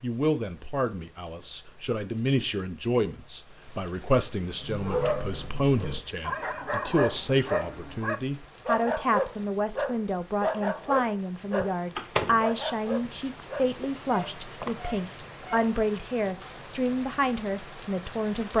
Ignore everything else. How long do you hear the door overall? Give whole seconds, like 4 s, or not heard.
2 s.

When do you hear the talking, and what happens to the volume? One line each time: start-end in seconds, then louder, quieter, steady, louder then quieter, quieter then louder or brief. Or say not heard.
0.0-18.5 steady.